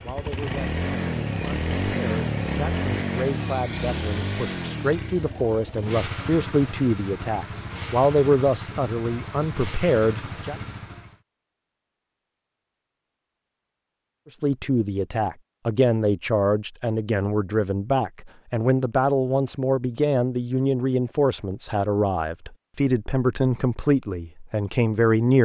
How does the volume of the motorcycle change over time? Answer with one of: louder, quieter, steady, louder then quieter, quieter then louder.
quieter.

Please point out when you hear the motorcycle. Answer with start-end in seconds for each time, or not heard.
0.0-11.2.